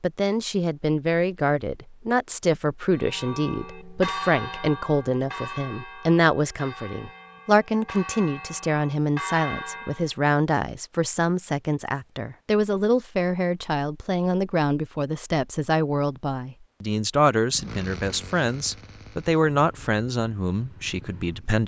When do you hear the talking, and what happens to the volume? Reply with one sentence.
You can hear the talking from 0.0 to 21.6 s, at a steady volume.